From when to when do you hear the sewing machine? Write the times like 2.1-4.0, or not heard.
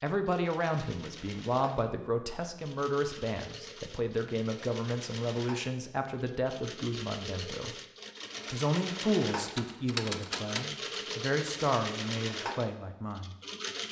0.0-13.8.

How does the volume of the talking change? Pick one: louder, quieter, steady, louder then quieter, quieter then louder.
steady.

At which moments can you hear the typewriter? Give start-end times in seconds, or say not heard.
9.4-11.2.